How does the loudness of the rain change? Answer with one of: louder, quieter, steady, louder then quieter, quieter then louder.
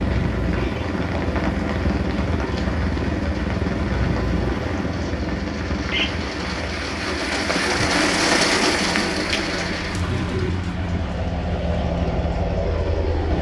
louder then quieter.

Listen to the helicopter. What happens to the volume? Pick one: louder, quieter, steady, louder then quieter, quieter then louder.
quieter then louder.